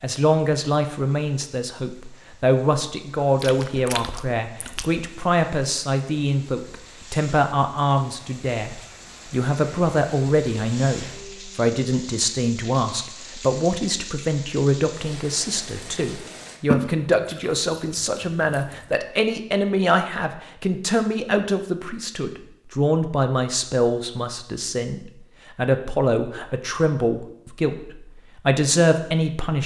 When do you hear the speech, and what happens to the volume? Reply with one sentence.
You can hear the speech from 0.0 to 29.6 s, at a steady volume.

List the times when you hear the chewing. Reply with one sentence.
You can hear the chewing from 3.4 to 5.0 s and from 16.7 to 18.9 s.